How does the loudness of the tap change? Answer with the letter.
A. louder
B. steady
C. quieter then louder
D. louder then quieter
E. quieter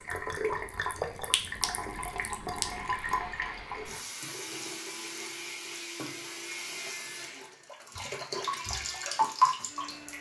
C.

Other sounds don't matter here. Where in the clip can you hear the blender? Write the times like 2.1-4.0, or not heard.
1.9-10.1.